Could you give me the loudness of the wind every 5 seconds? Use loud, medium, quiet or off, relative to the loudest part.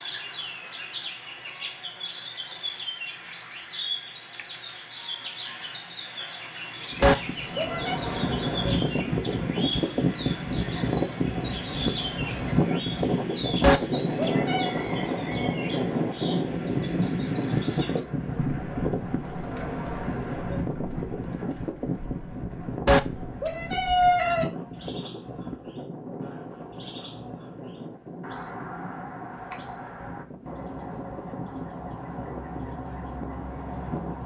off, loud, loud, loud, medium, quiet, quiet.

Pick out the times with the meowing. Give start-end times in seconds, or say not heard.
7.0-8.0, 13.6-14.7, 22.9-24.5.